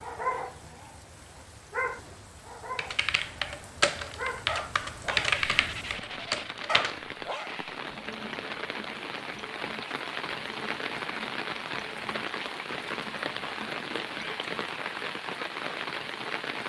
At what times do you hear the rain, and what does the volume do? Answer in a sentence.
The rain can be heard from 0.0 to 16.6 s, getting louder.